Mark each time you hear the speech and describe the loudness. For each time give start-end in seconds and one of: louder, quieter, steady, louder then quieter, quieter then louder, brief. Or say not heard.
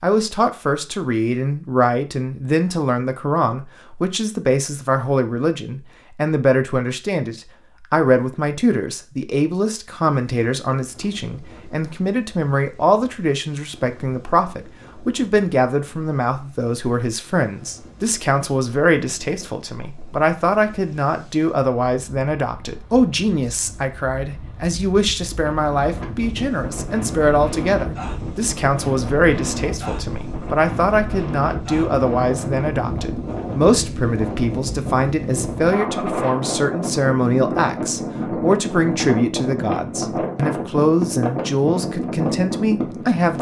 0.0-43.3 steady.